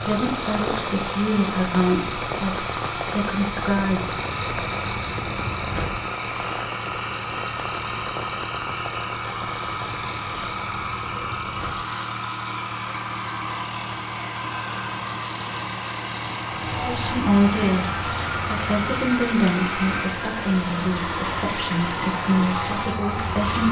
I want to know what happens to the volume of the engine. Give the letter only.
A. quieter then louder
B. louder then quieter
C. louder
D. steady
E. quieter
D.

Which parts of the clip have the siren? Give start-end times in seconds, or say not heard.
16.4-23.6.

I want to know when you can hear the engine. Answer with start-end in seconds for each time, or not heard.
0.0-23.6.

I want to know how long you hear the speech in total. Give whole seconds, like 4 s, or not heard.
11 s.